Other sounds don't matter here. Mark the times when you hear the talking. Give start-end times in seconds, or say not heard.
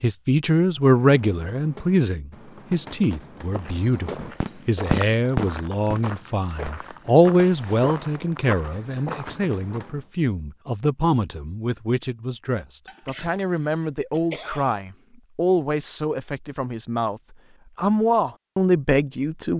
0.0-19.5.